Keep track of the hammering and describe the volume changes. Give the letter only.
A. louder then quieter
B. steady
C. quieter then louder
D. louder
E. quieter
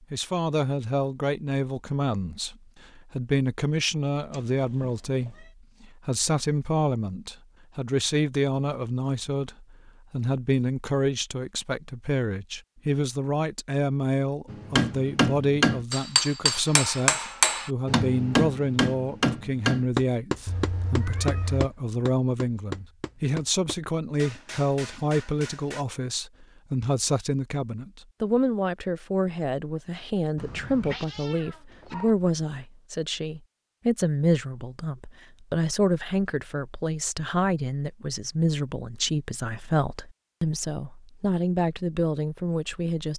E.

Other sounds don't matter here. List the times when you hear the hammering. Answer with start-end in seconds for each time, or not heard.
14.4-25.9.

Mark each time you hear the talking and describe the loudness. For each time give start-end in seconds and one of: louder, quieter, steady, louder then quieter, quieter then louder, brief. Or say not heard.
0.1-43.1 steady.